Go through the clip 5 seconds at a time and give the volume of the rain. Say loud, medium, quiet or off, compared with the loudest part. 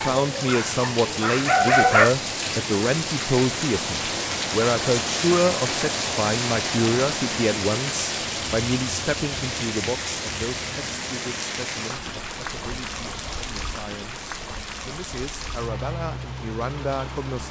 loud, loud, medium, medium.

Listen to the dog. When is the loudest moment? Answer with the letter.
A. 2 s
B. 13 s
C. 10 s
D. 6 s
A.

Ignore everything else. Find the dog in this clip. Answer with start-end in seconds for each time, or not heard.
0.0-2.1.